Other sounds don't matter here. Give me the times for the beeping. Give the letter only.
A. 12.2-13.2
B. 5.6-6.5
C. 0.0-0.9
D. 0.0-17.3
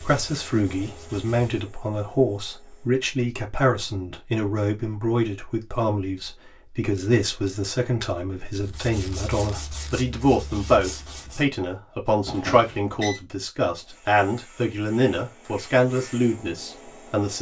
A.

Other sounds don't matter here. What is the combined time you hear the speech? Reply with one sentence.
You can hear the speech for 17 seconds altogether.